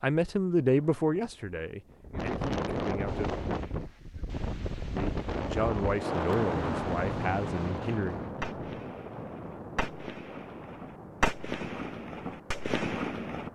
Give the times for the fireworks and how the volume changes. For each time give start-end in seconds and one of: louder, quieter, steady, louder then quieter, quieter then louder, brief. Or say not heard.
3.0-13.5 louder.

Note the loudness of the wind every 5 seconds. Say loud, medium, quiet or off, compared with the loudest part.
loud, loud, quiet.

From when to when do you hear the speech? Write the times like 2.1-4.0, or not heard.
0.0-3.4, 5.0-8.2.